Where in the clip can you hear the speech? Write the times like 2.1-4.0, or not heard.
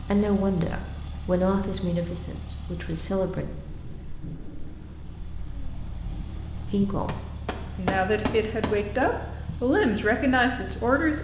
0.0-3.5, 6.7-11.1.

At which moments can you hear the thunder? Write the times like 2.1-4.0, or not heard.
3.4-6.8.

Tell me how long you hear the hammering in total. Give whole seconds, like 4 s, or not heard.
2 s.